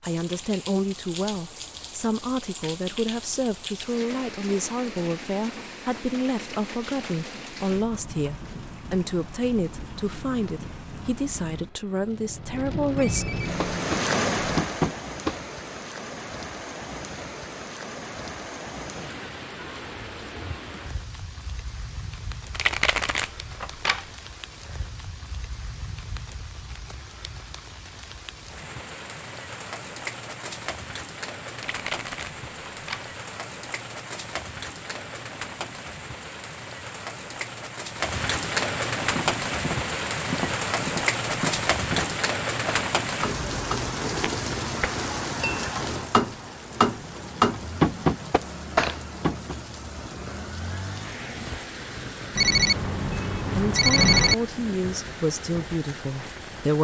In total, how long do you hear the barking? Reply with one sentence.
The barking can't be heard in this clip.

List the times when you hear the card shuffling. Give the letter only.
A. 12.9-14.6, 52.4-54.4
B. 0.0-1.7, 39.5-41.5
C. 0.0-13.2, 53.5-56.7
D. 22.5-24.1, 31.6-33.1
D.